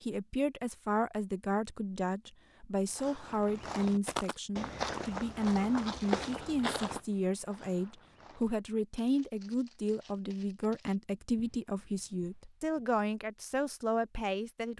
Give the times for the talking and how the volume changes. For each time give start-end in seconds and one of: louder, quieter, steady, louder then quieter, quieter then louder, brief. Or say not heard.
0.0-14.7 steady.